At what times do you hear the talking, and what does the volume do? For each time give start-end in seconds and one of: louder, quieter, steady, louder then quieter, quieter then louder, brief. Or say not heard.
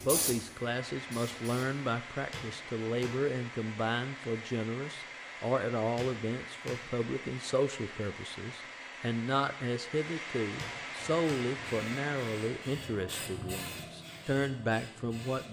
0.0-15.4 steady.